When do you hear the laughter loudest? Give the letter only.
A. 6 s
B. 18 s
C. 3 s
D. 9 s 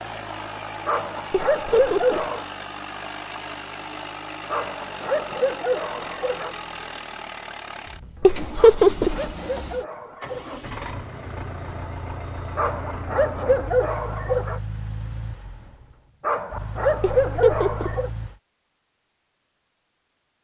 D.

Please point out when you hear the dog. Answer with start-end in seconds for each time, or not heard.
0.8-2.5, 4.5-6.5, 8.6-10.6, 12.6-14.6, 16.2-18.1.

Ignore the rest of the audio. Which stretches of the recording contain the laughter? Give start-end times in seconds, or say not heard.
1.6-2.2, 8.2-9.2, 17.0-17.9.